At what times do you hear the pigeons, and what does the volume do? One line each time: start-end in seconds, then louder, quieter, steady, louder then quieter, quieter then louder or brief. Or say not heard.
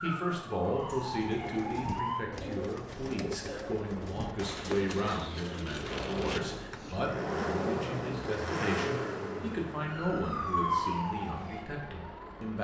1.4-7.0 steady.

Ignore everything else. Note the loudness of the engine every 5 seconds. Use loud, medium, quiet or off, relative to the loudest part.
quiet, loud, medium.